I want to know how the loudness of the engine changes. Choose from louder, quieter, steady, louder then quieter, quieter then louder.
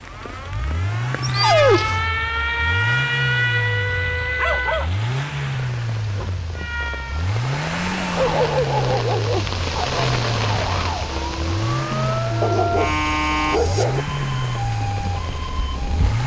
steady.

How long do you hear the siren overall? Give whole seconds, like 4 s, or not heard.
13 s.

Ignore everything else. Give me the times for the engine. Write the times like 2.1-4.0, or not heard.
0.0-16.2.